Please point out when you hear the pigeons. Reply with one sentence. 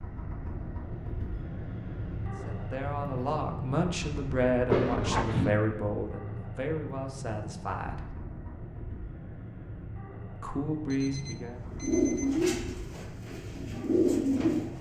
The pigeons can be heard from 11.7 to 14.7 s.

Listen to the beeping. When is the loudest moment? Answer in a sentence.
The volume of the beeping peaks at 5 seconds.